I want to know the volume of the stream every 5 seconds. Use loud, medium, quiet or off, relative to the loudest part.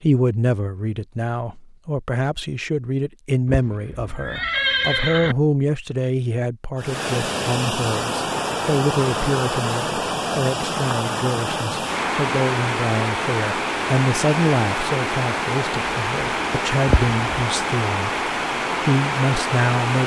off, loud, loud, loud.